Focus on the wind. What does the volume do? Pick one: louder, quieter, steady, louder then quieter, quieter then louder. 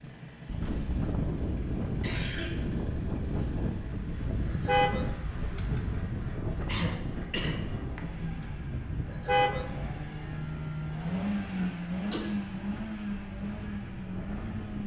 quieter.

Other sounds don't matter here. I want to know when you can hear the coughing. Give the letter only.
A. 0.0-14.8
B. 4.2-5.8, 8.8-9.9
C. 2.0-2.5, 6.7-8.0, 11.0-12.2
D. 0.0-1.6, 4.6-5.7
C.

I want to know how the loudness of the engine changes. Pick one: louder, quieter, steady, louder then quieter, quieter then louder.
louder.